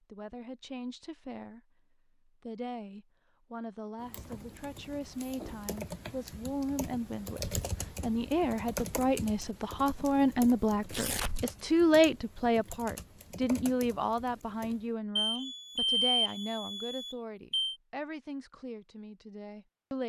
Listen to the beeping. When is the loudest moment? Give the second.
16 s.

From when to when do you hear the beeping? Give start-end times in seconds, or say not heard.
15.2-17.8.